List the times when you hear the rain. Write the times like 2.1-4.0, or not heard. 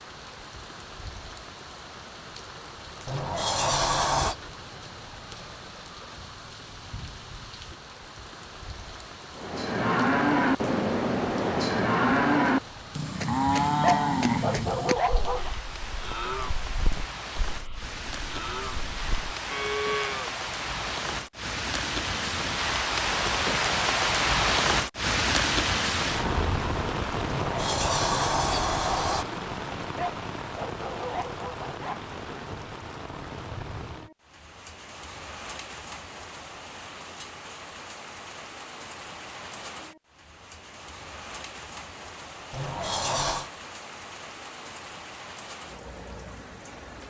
0.0-47.0.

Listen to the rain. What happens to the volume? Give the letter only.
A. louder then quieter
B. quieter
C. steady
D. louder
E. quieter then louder
A.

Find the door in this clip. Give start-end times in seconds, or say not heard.
3.0-4.3, 27.2-29.2, 42.5-43.5.